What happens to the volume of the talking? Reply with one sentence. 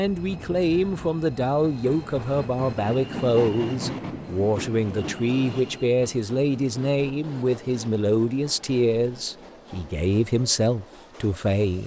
The volume of the talking stays about the same.